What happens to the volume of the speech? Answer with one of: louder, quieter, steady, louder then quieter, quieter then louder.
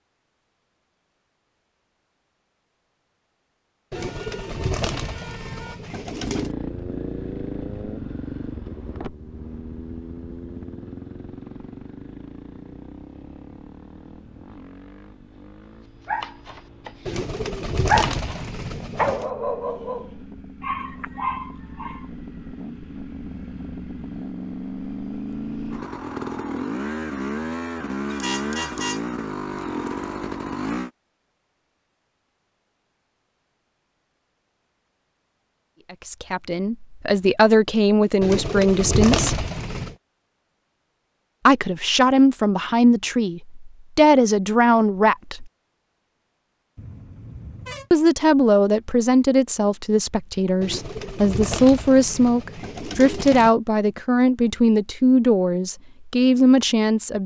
steady.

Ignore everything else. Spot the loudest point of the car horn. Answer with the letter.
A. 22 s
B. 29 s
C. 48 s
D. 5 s
B.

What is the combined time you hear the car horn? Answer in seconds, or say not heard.
4 s.